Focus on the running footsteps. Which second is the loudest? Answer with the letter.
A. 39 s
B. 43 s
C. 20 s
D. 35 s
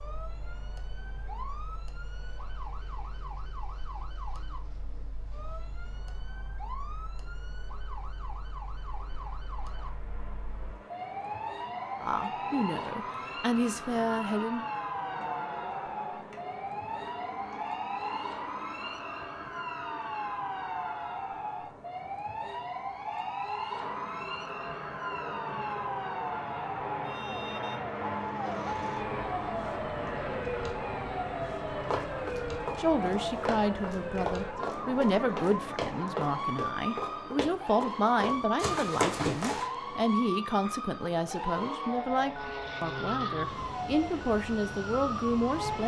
A.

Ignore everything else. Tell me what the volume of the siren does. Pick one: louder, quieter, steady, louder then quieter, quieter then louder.
louder.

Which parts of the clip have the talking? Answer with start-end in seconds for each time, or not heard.
12.0-14.7, 32.8-45.8.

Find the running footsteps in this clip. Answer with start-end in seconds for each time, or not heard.
31.9-39.6.